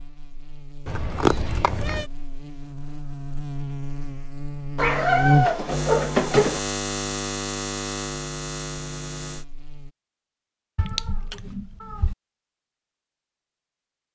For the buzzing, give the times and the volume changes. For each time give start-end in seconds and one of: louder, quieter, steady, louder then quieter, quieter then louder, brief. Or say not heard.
0.0-9.9 louder then quieter.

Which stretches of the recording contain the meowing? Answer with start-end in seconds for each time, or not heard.
0.8-2.0, 4.8-6.6, 10.8-12.2.